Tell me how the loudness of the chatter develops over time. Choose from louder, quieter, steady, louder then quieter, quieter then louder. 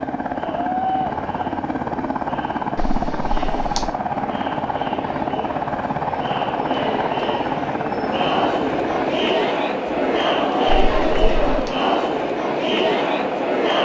louder.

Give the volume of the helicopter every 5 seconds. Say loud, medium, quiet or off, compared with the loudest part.
loud, loud, medium.